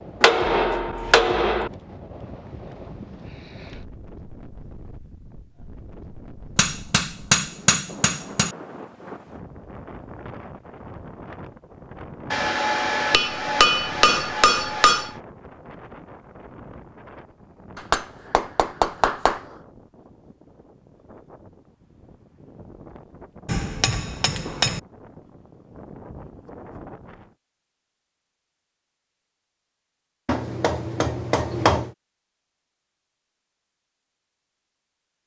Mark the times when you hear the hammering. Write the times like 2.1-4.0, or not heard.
0.2-1.7, 6.5-8.6, 12.3-15.2, 17.8-19.4, 23.4-24.8, 30.2-31.9.